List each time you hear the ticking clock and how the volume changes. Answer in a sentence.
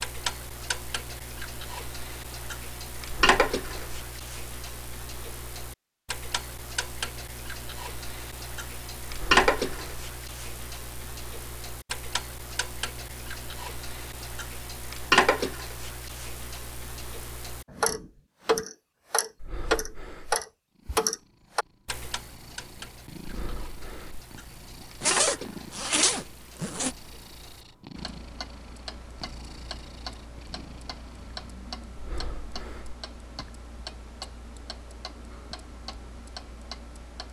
You can hear the ticking clock from 0.0 to 37.2 s, getting louder then quieter.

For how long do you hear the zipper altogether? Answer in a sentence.
You can hear the zipper for 2 seconds altogether.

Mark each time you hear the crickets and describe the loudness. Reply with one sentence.
You can't hear the crickets here.